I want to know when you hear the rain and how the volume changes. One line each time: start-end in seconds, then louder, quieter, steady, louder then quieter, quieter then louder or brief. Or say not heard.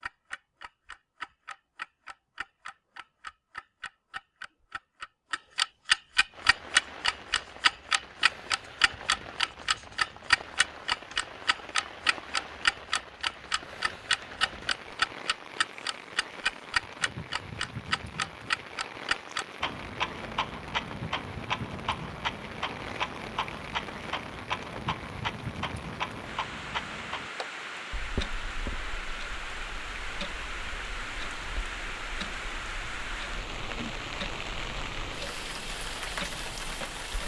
6.3-37.2 louder.